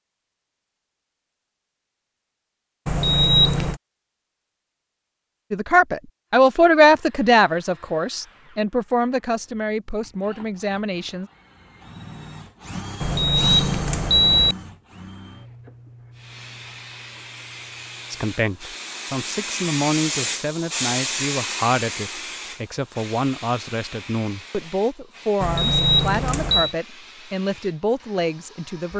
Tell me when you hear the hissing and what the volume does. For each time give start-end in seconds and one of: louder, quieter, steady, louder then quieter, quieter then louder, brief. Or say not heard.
16.1-28.9 louder then quieter.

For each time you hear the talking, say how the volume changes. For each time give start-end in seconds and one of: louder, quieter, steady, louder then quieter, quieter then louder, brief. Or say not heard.
5.5-11.3 quieter
18.1-28.9 steady.